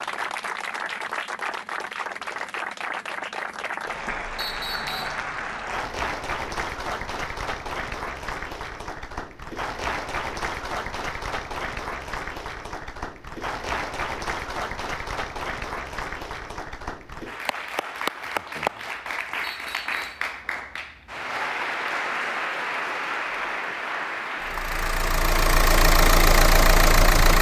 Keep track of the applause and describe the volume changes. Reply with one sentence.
The volume of the applause stays about the same.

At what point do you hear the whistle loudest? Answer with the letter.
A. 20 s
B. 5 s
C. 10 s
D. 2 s
B.